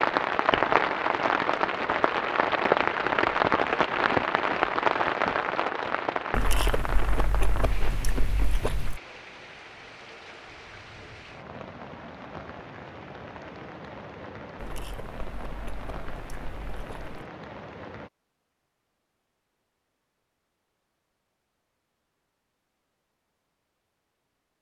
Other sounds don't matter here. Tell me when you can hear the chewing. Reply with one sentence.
The chewing can be heard from 6.3 to 9.0 s and from 14.6 to 17.2 s.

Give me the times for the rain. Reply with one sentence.
The rain can be heard from 0.0 to 18.1 s.